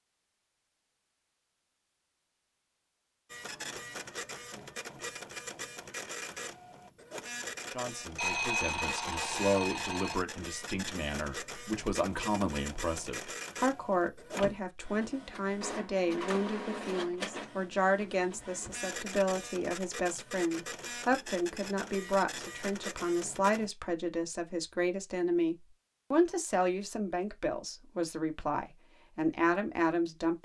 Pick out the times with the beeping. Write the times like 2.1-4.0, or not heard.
8.2-10.2.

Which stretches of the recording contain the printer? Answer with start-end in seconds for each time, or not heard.
3.3-23.7.